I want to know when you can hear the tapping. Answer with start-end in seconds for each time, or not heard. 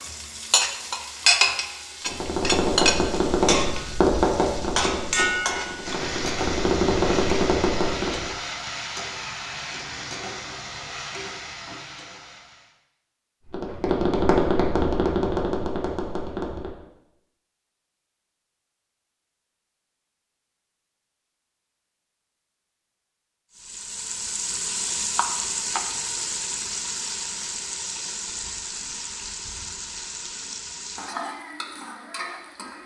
2.0-8.3, 13.4-16.8.